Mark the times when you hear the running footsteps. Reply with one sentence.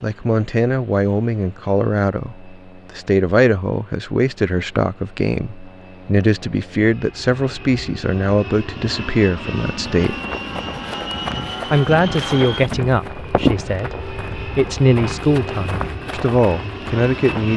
The running footsteps can be heard from 10.1 to 17.5 s.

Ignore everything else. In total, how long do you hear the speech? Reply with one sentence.
The speech can be heard for 16 seconds in total.